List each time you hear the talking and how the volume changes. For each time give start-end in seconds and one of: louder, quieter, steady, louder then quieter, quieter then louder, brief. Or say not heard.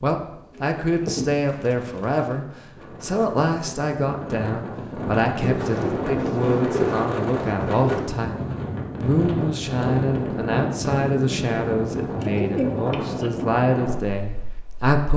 0.0-15.1 steady.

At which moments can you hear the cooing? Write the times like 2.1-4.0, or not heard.
0.6-2.4, 5.4-8.2, 12.2-13.3.